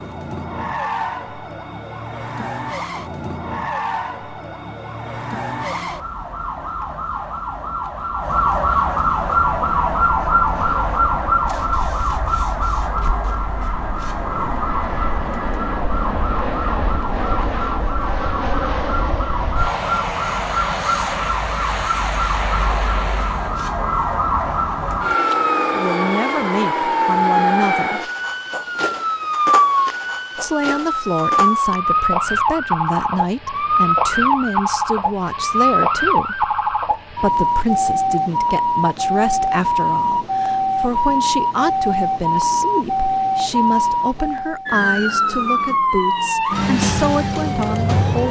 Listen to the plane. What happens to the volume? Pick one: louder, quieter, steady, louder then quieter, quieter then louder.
louder.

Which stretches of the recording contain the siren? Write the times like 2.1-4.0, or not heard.
0.0-48.2.